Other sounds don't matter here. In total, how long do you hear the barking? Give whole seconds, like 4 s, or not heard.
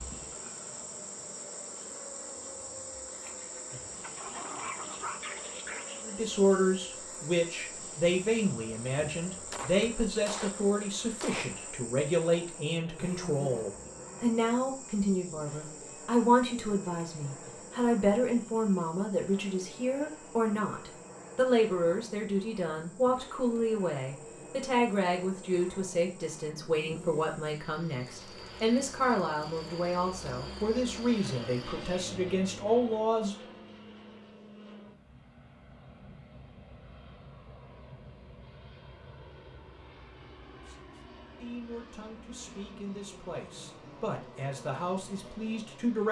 2 s.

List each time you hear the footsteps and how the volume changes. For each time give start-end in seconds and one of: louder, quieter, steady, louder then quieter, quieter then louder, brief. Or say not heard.
not heard.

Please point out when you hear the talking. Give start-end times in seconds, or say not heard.
6.0-33.4, 40.5-46.0.